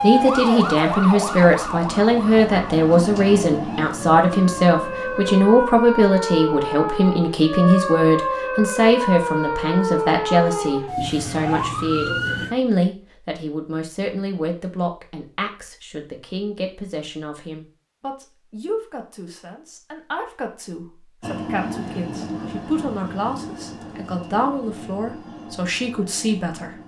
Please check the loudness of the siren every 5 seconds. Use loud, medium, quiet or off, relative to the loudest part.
loud, loud, loud, off, off, off.